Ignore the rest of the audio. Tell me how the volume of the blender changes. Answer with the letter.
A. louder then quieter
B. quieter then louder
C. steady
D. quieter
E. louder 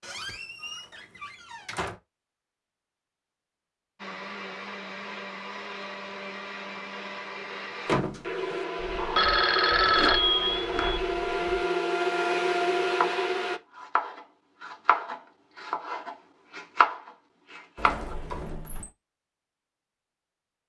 E.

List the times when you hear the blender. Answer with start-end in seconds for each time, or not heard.
4.0-13.6.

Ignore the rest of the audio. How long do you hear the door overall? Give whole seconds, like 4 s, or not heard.
4 s.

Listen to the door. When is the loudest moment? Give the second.
8 s.